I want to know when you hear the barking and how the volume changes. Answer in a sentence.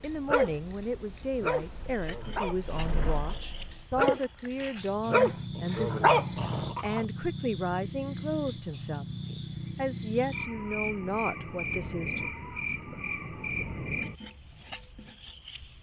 You can hear the barking from 0.0 to 7.0 s, getting quieter then louder.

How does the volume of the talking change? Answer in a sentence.
The volume of the talking stays about the same.